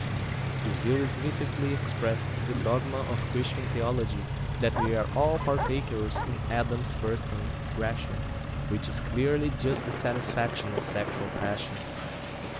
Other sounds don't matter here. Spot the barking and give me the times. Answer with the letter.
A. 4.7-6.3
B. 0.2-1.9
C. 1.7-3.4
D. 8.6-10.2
A.